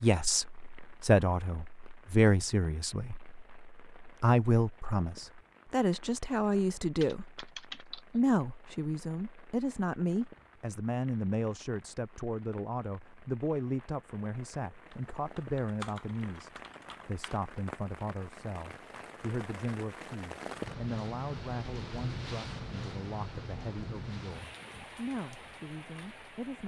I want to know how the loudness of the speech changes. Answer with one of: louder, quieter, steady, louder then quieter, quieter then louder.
quieter.